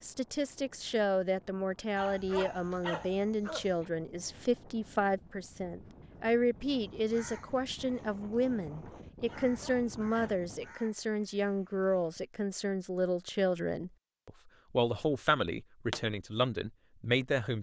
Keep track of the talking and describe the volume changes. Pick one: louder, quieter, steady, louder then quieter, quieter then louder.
steady.